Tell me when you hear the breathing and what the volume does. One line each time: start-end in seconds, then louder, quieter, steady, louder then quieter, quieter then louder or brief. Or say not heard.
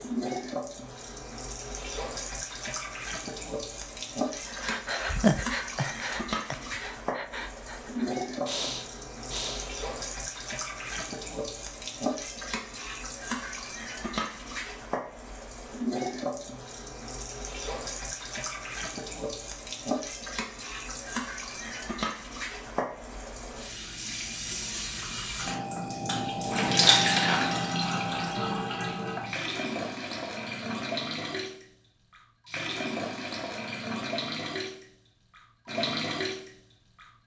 4.3-9.7 quieter then louder.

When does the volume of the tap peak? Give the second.
27 s.